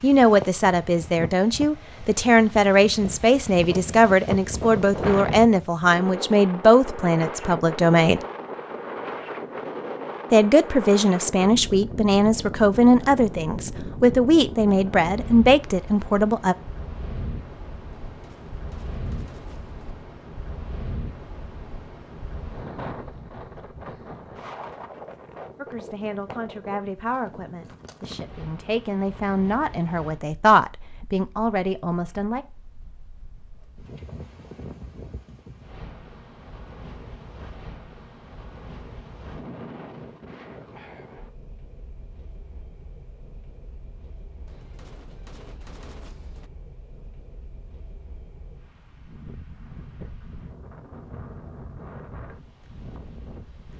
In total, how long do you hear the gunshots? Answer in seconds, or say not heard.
4 s.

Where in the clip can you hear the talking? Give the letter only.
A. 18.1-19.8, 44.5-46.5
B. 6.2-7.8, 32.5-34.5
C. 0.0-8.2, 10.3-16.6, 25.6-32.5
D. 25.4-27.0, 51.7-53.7
C.